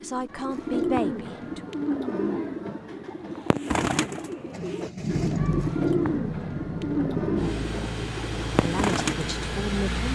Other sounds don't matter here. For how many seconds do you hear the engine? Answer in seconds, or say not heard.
6 s.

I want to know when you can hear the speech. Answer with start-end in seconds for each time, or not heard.
0.0-1.6, 8.6-10.1.